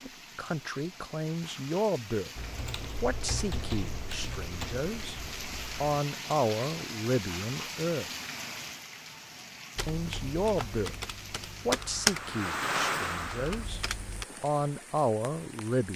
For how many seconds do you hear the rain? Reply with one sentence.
The rain can be heard for 16 seconds in total.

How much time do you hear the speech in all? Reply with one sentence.
You can hear the speech for 12 seconds altogether.